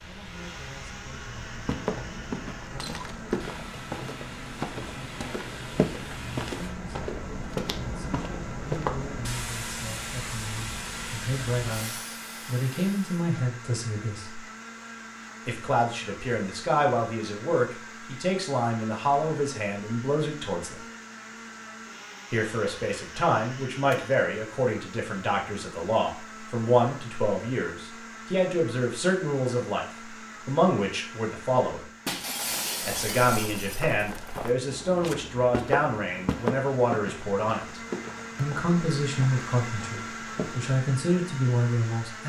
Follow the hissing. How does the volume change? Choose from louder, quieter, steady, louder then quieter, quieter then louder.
louder.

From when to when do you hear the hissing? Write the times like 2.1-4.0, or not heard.
0.0-13.2.